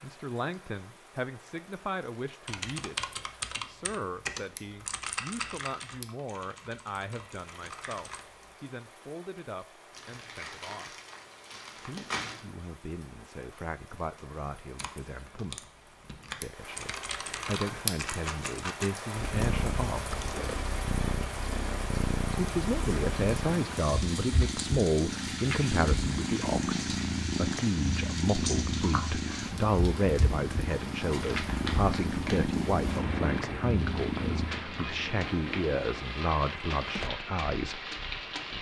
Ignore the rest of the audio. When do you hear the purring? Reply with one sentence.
The purring can be heard from 19.1 to 38.5 s.